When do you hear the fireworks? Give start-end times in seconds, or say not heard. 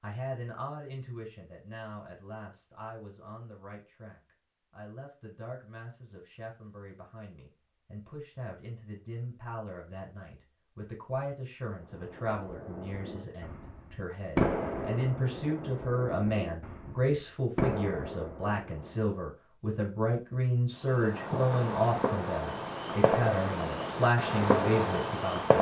11.8-19.1, 20.9-25.5.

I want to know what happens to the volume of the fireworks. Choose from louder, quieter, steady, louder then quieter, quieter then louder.
quieter then louder.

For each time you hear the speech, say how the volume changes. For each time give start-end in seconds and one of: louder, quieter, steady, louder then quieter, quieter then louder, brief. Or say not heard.
0.0-25.5 louder.